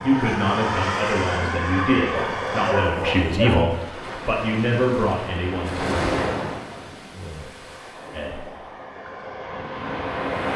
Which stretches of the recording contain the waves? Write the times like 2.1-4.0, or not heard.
3.6-10.5.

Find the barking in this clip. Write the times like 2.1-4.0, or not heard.
2.1-3.7.